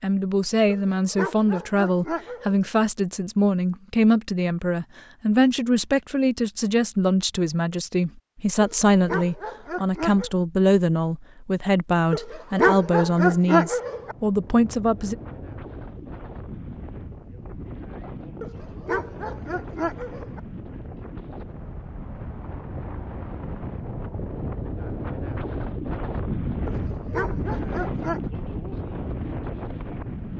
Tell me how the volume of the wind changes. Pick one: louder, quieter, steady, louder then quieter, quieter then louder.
louder.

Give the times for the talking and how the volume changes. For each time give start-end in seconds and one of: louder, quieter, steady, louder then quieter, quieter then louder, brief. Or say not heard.
0.0-15.2 steady.